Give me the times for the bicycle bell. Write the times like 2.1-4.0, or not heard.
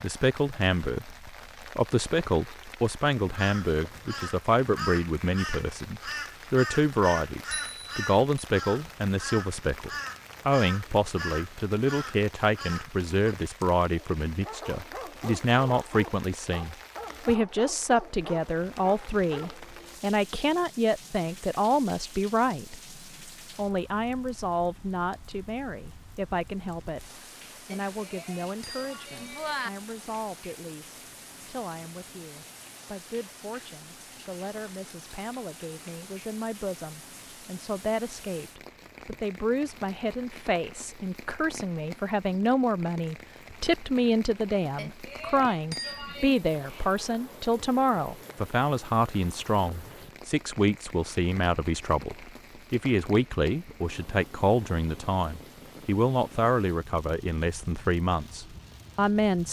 7.5-8.4, 27.7-29.7, 44.8-46.4.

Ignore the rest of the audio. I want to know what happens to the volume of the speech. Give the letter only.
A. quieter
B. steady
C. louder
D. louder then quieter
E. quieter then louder
E.